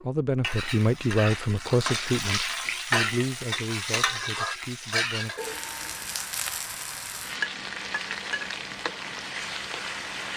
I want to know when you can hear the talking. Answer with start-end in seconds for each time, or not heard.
0.0-5.3.